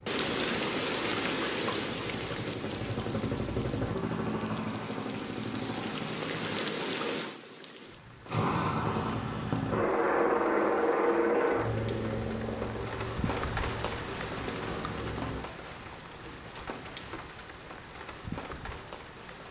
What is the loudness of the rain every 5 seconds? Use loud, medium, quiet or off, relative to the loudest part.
loud, loud, medium, medium.